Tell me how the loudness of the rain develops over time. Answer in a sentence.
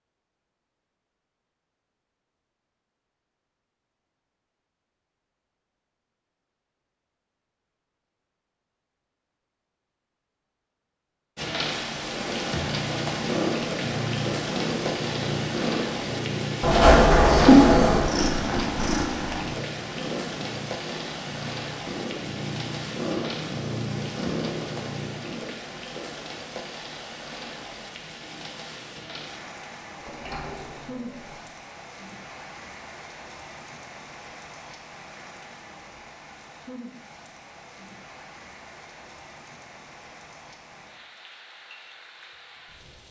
The loudness of the rain goes down.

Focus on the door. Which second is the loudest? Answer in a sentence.
The volume of the door peaks at 17 seconds.